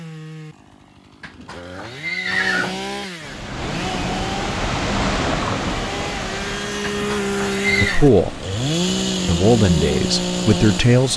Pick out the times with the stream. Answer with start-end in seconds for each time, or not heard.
3.2-11.1.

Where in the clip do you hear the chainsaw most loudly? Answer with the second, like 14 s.
9 s.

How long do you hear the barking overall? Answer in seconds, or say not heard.
not heard.